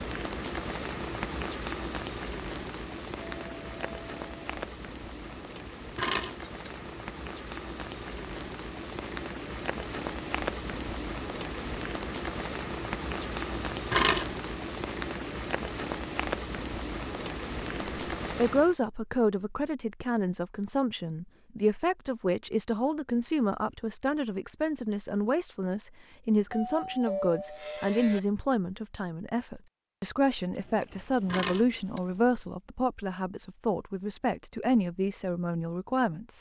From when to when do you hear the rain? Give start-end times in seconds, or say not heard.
0.0-18.8.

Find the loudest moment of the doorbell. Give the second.
27 s.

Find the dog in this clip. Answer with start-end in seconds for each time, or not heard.
not heard.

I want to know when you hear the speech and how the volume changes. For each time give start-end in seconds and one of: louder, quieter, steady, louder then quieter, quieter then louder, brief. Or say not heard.
17.8-36.3 steady.